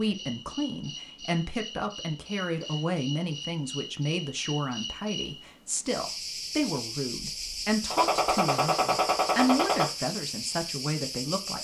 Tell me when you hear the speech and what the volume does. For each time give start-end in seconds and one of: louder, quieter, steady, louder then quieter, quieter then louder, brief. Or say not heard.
0.0-11.5 steady.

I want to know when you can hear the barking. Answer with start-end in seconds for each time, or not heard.
not heard.